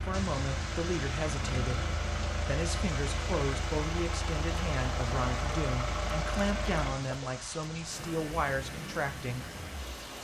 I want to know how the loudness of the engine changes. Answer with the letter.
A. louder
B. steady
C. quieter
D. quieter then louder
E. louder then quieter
C.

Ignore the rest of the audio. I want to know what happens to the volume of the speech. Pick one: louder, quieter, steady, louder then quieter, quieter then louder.
steady.